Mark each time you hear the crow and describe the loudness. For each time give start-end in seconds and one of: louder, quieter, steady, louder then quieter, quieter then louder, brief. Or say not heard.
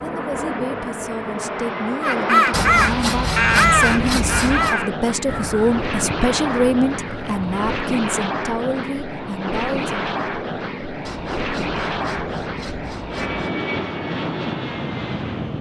2.0-7.7 quieter.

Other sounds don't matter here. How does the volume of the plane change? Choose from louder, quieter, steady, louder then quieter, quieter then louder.
steady.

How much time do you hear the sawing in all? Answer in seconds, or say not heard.
5 s.